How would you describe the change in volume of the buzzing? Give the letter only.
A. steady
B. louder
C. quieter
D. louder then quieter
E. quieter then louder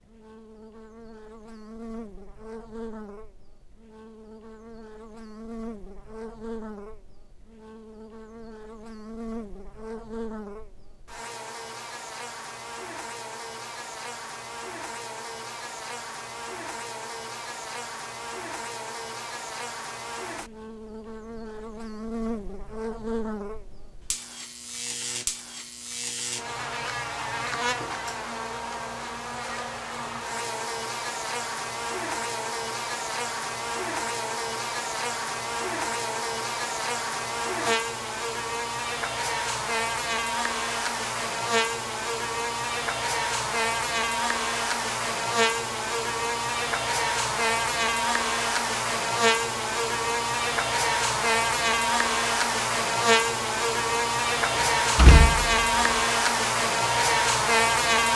B.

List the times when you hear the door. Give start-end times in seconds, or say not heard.
54.5-55.9.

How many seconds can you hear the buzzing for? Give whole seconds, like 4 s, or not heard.
58 s.